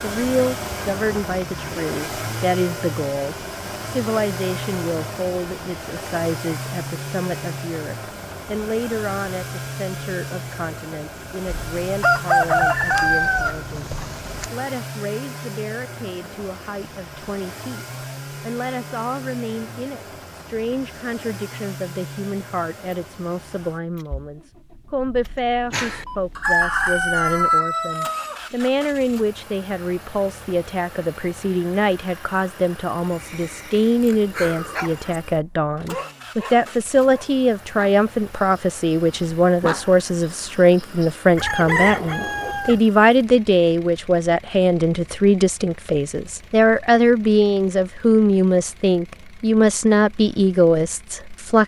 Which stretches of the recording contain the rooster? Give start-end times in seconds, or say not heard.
11.4-14.5, 25.7-28.4, 41.4-42.8.